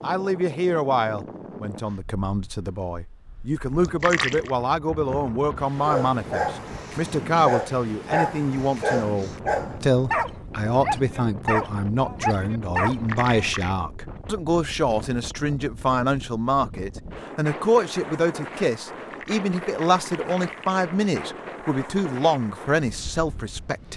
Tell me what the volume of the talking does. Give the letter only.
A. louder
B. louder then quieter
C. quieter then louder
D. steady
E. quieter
D.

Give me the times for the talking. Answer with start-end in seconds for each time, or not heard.
0.0-23.9.